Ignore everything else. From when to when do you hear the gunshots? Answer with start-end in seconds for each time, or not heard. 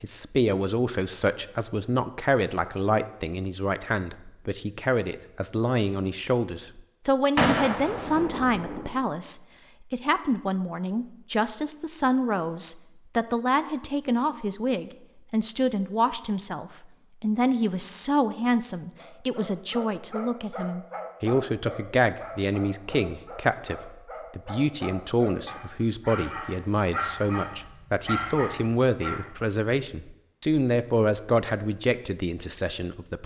7.3-8.9.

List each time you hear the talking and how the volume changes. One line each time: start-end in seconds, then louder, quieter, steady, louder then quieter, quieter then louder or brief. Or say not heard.
0.0-33.2 steady.